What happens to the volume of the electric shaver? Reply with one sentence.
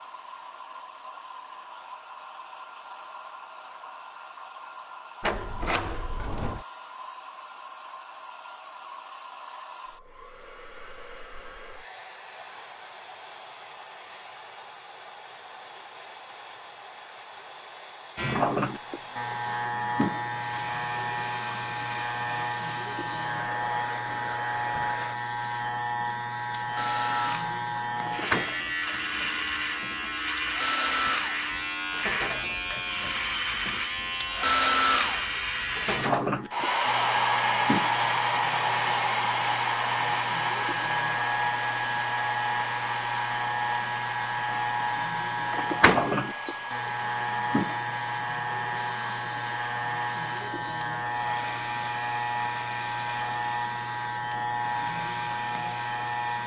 The loudness of the electric shaver stays about the same.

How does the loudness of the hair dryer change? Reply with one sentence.
The volume of the hair dryer goes up, then down.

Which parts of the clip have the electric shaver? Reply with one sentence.
You can hear the electric shaver from 18.1 to 56.4 s.